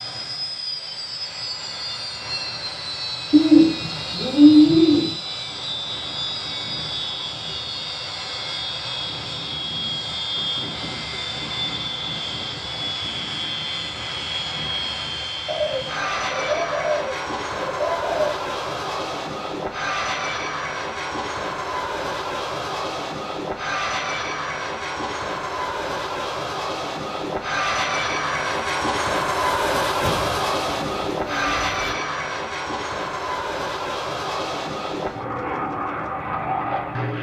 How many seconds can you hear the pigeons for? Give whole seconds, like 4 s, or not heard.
7 s.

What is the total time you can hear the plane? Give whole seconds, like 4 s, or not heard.
37 s.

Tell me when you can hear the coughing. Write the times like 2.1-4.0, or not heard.
not heard.